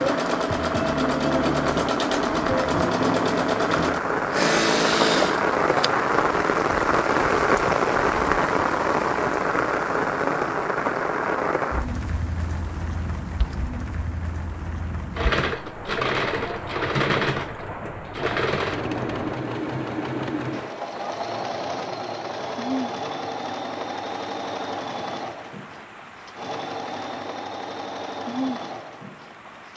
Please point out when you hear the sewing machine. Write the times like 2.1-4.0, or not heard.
0.0-5.9, 15.2-29.7.